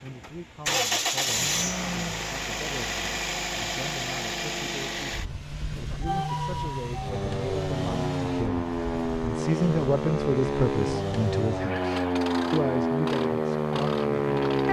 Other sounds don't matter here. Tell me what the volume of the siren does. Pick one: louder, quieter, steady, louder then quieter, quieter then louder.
louder.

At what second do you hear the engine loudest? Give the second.
1 s.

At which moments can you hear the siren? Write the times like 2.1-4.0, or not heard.
6.0-14.6.